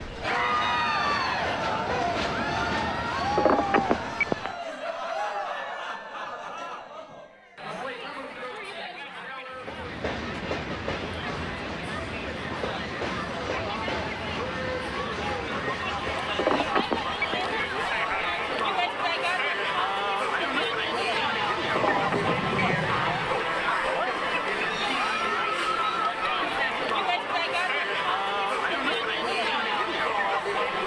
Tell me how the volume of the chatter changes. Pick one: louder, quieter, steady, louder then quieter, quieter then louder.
quieter then louder.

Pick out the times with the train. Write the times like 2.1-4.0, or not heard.
0.0-4.7, 9.5-23.5.